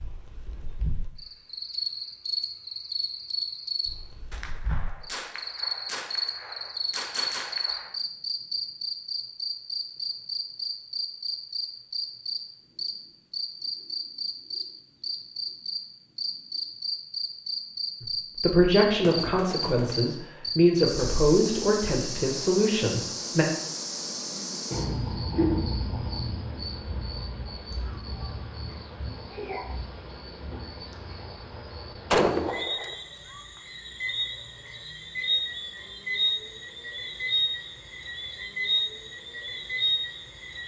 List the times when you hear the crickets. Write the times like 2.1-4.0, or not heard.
0.0-40.6.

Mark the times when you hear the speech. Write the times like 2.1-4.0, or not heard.
18.0-23.4.